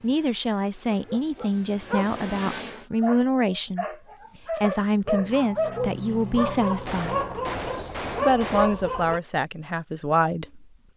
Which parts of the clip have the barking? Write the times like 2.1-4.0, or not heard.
0.9-9.2.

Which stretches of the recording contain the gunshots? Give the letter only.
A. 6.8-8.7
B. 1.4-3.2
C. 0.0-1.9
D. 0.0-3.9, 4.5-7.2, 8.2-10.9
A.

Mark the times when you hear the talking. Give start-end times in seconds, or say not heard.
0.0-3.9, 4.5-7.2, 8.2-10.9.